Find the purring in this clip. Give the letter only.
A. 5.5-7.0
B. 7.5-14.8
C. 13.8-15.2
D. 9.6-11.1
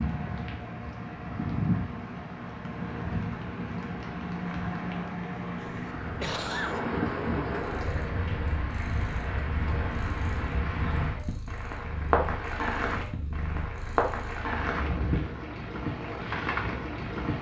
B.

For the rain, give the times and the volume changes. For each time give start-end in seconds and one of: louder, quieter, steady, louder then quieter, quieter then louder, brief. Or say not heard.
0.0-17.3 steady.